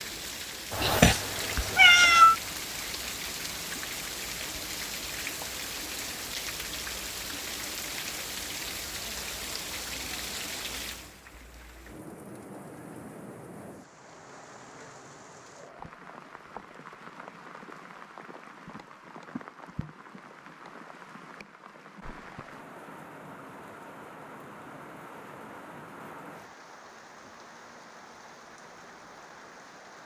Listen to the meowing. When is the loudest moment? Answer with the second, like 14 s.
2 s.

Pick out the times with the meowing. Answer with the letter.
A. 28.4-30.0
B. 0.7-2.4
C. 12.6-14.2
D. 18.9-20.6
B.